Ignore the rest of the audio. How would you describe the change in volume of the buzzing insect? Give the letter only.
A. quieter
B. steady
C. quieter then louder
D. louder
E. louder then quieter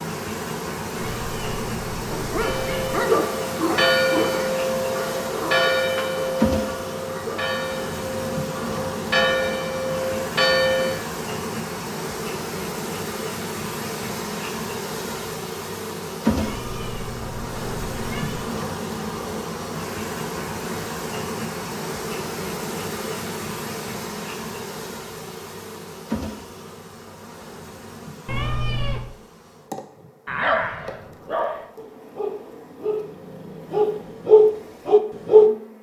A.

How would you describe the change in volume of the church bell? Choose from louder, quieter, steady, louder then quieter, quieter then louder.
quieter then louder.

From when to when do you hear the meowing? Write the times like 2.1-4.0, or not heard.
0.9-3.0, 16.4-18.4, 28.2-29.1.